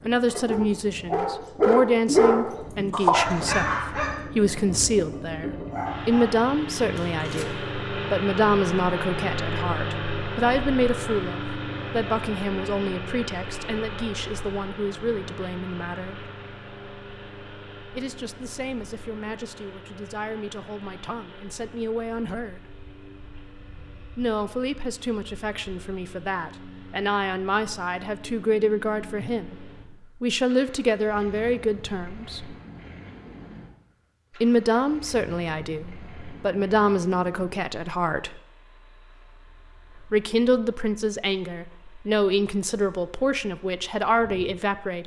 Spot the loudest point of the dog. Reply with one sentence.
The volume of the dog peaks at 2 seconds.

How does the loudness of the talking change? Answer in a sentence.
The loudness of the talking goes down, then up.